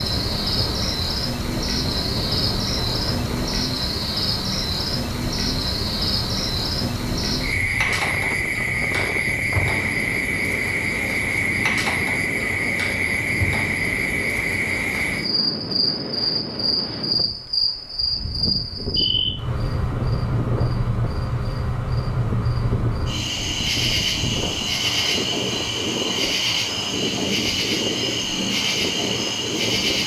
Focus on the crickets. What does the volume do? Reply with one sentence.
The volume of the crickets stays about the same.